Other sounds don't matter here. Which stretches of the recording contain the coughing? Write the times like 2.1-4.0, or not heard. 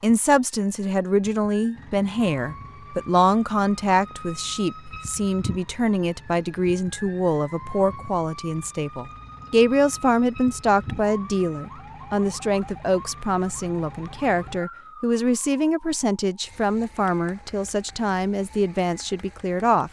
not heard.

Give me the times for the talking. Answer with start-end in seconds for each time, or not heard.
0.0-19.8.